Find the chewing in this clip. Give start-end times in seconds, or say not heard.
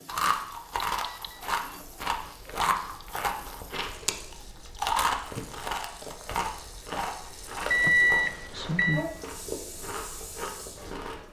0.1-11.2.